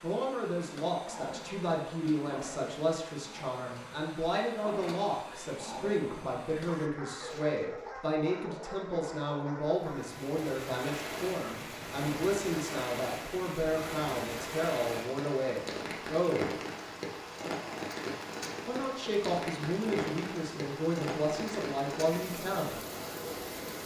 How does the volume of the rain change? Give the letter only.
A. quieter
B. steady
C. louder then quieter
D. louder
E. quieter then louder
B.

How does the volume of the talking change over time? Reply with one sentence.
The volume of the talking stays about the same.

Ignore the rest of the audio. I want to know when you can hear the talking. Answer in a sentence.
You can hear the talking from 0.0 to 16.5 s and from 18.6 to 22.8 s.